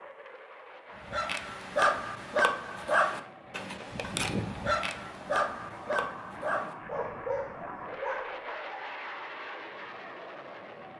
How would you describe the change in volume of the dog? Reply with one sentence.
The loudness of the dog goes down.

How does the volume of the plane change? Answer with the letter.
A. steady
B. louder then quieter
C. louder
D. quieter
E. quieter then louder
C.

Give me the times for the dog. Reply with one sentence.
The dog can be heard from 1.0 to 8.3 s.